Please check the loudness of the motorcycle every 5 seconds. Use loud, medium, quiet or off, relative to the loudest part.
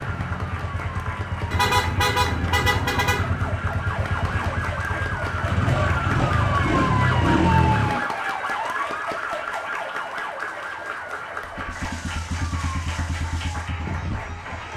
medium, loud, quiet.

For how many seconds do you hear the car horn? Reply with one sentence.
The car horn can be heard for 2 seconds in total.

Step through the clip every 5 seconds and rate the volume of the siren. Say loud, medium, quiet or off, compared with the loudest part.
medium, loud, medium.